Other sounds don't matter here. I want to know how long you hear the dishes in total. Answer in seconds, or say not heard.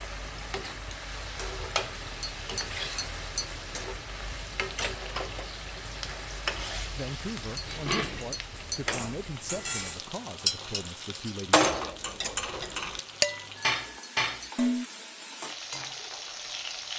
7 s.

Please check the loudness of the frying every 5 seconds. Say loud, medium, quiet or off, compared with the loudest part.
loud, loud, medium, loud.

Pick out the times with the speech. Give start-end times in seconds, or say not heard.
7.0-11.7.